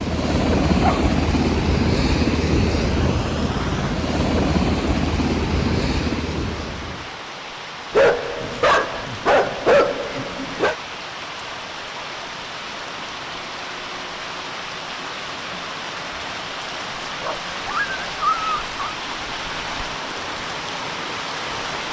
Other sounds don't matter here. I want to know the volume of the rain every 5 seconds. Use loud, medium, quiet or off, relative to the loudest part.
medium, medium, loud, loud, loud.